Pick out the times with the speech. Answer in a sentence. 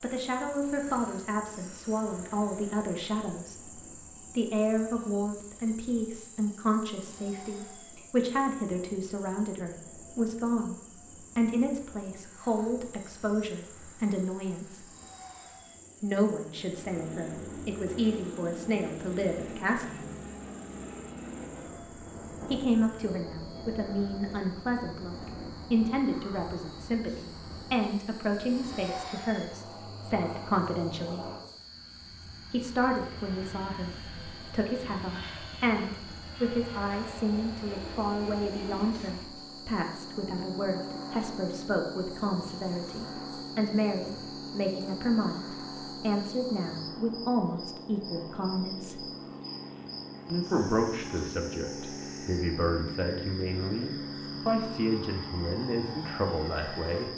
You can hear the speech from 0.0 to 10.8 s, from 11.3 to 14.8 s, from 16.0 to 20.0 s, from 22.5 to 31.3 s, from 32.5 to 49.1 s and from 50.2 to 57.1 s.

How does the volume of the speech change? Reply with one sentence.
The loudness of the speech stays about the same.